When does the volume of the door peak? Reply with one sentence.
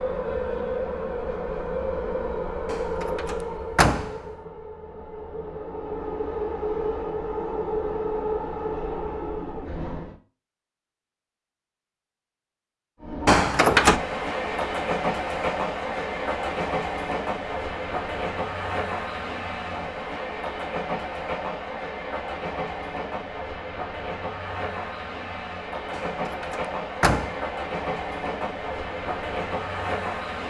The loudest moment of the door is at 14 seconds.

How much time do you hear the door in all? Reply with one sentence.
The door can be heard for 4 seconds in total.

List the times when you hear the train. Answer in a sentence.
The train can be heard from 0.0 to 10.2 s and from 13.0 to 30.4 s.